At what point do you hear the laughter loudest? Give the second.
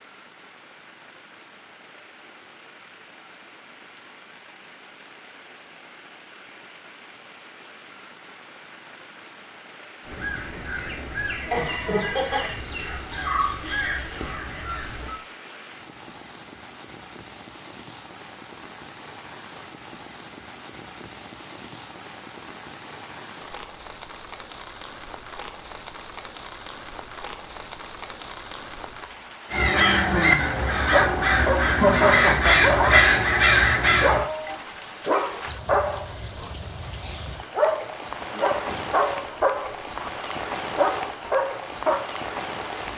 32 s.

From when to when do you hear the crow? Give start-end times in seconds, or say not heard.
10.1-15.2, 29.5-34.2.